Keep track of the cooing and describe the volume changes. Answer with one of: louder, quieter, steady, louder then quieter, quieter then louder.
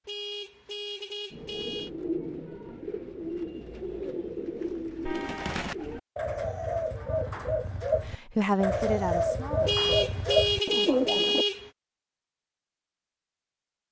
louder.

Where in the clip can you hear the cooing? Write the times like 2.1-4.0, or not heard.
1.3-11.4.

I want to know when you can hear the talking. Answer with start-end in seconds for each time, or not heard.
8.3-10.1.